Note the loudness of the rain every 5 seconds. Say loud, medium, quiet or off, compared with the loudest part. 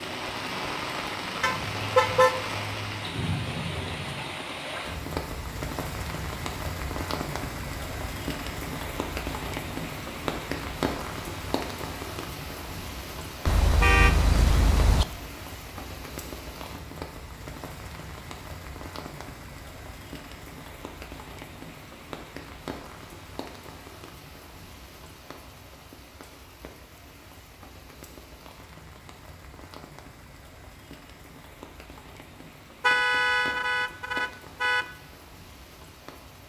loud, loud, loud, medium, medium, quiet, quiet, quiet.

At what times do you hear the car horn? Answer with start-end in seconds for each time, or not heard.
1.4-2.4, 13.4-15.1, 32.8-34.9.